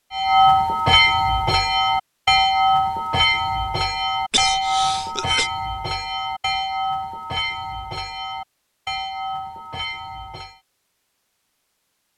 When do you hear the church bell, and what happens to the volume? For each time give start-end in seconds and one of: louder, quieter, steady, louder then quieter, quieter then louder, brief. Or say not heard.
0.1-10.6 quieter.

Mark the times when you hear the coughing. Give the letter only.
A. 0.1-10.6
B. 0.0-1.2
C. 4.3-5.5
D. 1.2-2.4
C.